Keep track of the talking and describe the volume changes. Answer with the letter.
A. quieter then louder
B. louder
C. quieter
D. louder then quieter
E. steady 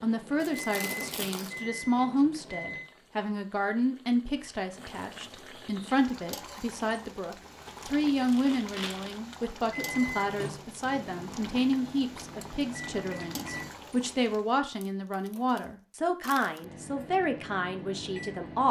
E.